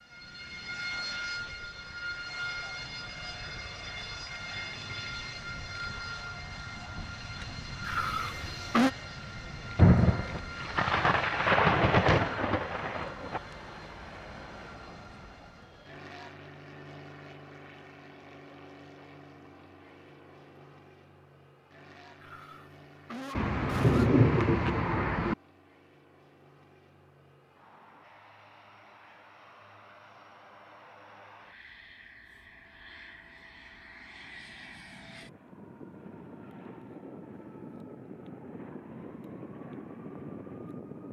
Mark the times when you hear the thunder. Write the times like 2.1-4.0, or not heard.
9.8-13.4, 23.4-25.4.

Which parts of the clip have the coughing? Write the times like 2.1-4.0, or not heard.
7.8-8.9, 22.2-24.1.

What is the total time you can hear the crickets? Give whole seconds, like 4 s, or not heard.
not heard.